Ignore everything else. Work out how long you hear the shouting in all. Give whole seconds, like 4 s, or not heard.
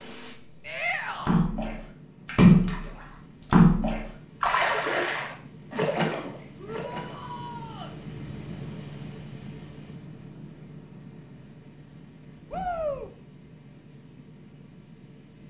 3 s.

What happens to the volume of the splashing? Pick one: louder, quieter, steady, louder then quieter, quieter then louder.
quieter.